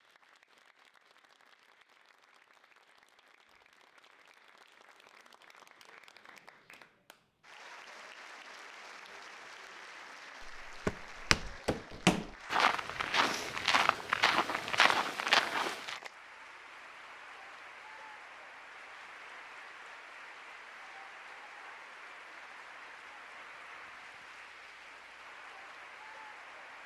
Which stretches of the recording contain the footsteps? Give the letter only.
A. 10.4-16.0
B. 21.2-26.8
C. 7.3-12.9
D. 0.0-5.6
A.